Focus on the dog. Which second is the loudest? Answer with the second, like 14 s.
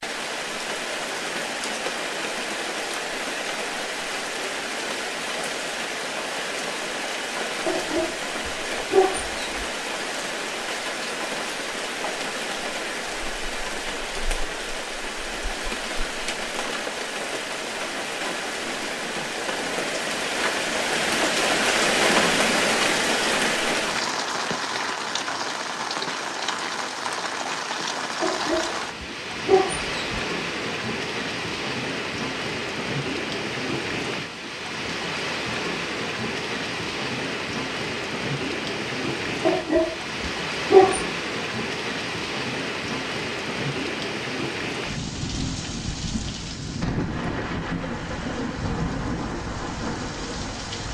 41 s.